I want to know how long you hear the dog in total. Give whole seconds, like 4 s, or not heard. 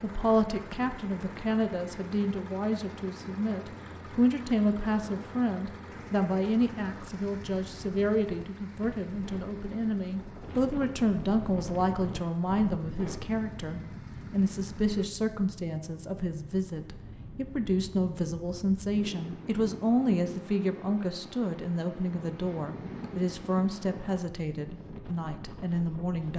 not heard.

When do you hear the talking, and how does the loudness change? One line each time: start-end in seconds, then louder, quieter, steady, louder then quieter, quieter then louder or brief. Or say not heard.
0.0-26.3 steady.